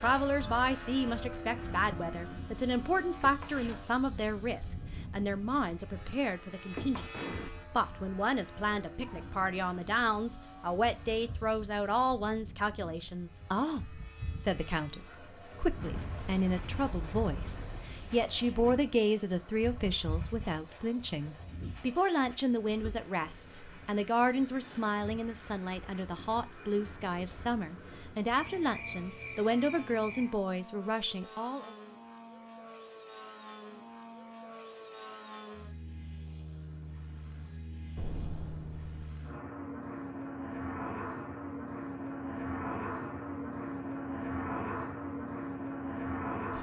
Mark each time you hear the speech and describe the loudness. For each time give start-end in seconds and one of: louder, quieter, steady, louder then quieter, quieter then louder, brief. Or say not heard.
0.0-31.8 steady.